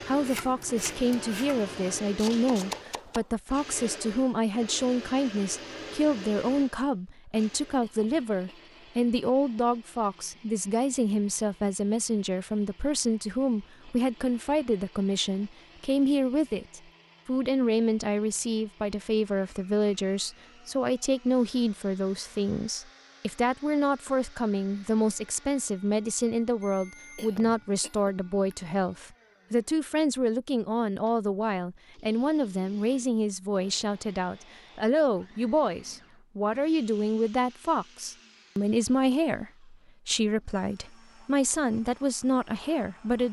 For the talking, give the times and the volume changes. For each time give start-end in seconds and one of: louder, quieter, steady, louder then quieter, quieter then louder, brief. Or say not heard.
0.1-43.2 steady.